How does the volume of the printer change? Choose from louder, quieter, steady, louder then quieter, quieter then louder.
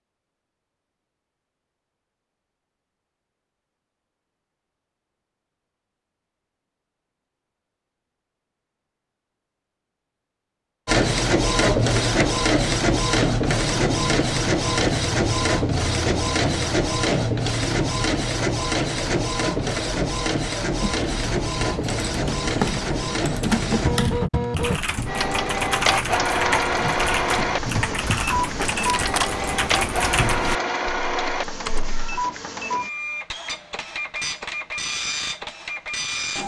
quieter.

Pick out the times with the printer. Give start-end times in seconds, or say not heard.
10.8-36.4.